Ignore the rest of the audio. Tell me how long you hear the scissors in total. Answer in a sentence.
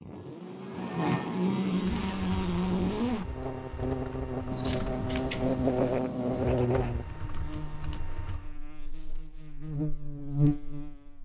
You can hear the scissors for 2 seconds altogether.